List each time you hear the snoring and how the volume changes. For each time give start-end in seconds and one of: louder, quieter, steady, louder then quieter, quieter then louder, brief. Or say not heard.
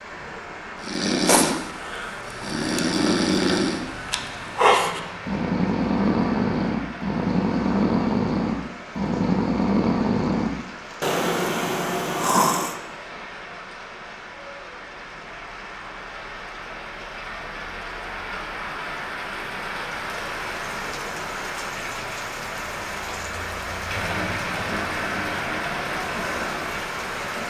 0.8-12.8 steady.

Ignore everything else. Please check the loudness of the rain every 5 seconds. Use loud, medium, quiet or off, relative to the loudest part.
medium, medium, medium, medium, loud, loud.